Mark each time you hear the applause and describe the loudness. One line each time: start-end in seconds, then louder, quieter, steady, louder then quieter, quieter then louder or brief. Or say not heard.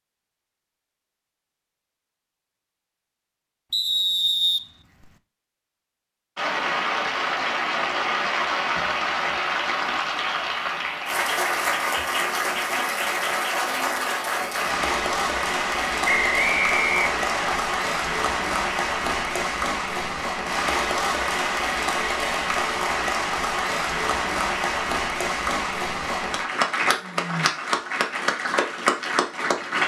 6.3-29.8 steady.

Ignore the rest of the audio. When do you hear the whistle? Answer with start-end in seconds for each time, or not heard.
3.7-5.2, 16.1-17.6.